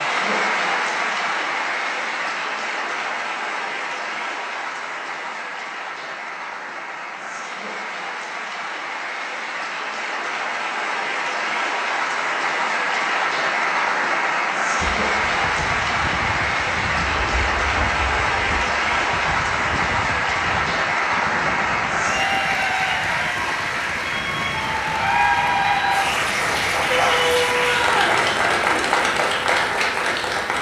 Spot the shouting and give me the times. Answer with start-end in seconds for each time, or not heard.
26.9-28.2.